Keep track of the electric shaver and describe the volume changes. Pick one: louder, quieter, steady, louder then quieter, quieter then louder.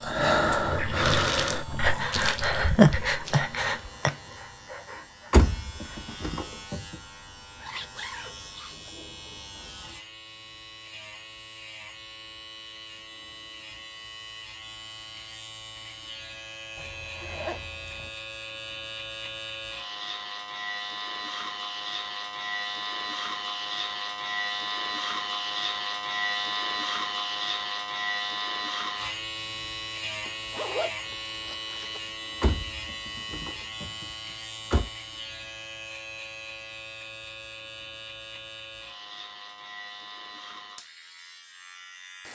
louder then quieter.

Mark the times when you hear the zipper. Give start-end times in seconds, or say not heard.
7.6-8.9, 16.8-18.1, 30.2-32.0.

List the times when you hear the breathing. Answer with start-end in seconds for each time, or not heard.
0.0-6.1.